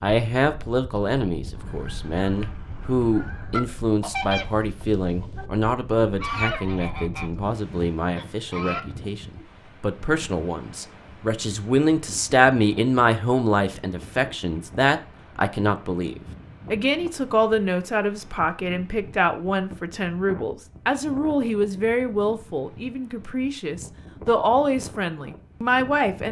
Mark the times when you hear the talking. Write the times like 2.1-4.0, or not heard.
0.0-26.2.